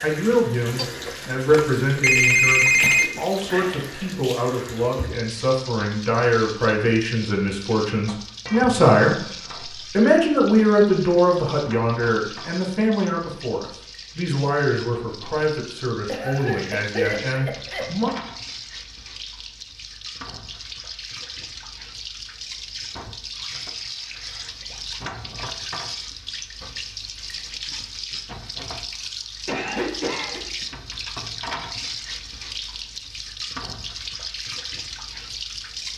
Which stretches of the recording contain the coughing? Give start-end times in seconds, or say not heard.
2.8-3.4, 16.1-17.9, 29.4-30.4.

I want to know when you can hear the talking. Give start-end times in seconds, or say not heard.
0.0-9.2, 9.9-18.1.